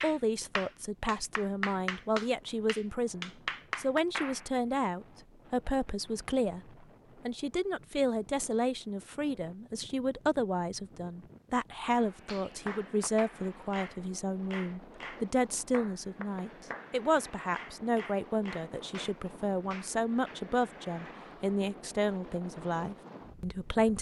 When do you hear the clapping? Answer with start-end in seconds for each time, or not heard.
0.0-4.5, 11.9-20.4.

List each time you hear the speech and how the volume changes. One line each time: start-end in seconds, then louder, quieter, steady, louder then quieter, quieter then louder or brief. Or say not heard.
0.0-23.9 steady.